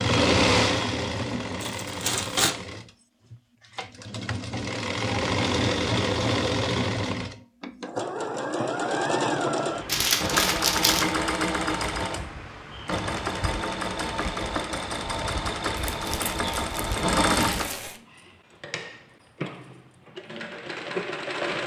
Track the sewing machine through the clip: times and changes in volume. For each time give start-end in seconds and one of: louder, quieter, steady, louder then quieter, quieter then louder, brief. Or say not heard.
0.0-21.6 steady.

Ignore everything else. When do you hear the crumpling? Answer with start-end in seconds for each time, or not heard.
1.6-2.5, 9.8-11.2, 15.8-18.0.